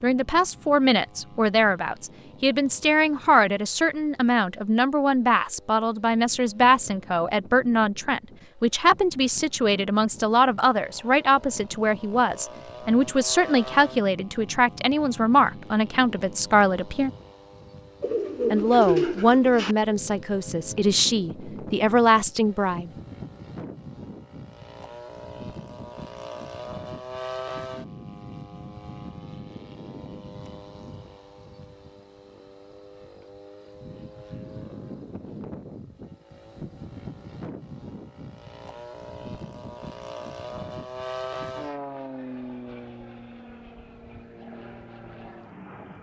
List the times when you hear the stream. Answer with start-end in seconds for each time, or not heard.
not heard.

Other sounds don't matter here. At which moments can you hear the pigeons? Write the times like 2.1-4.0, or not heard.
18.0-19.8.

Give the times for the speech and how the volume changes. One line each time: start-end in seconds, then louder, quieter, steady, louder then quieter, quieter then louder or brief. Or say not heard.
0.0-17.1 steady
18.5-22.9 quieter then louder.